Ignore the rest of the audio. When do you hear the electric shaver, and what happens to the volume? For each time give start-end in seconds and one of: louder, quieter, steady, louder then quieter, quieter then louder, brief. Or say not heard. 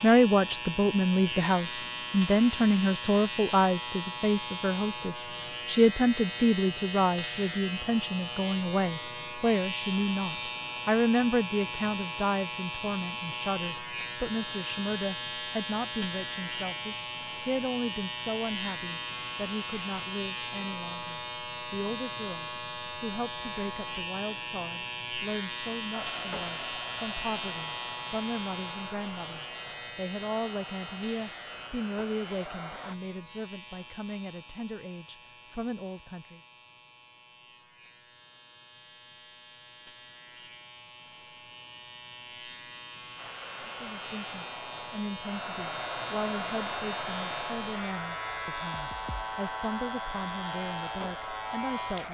0.0-52.0 quieter then louder.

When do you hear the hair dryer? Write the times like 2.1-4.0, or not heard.
25.9-33.0, 43.1-52.0.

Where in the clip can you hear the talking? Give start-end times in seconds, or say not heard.
0.0-36.4, 43.6-52.0.